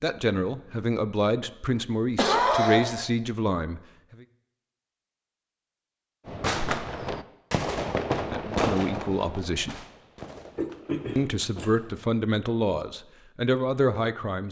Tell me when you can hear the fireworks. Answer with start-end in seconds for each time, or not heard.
6.2-12.1.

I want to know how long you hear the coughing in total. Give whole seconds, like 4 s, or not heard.
2 s.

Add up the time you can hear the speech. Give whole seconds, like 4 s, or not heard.
9 s.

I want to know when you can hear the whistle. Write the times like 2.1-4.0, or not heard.
not heard.